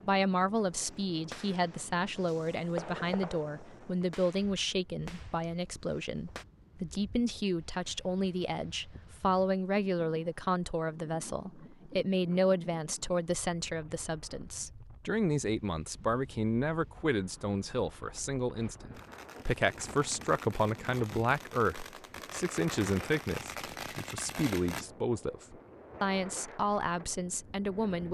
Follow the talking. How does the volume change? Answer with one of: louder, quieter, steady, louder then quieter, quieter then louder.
steady.